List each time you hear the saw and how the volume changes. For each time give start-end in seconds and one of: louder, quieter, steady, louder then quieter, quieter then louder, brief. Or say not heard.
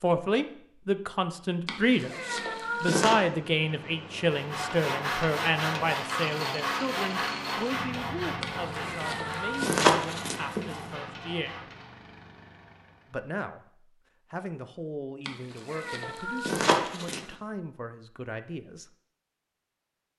4.3-11.9 quieter.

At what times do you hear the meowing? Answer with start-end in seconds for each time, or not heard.
1.6-3.1, 8.4-10.8, 15.2-17.2.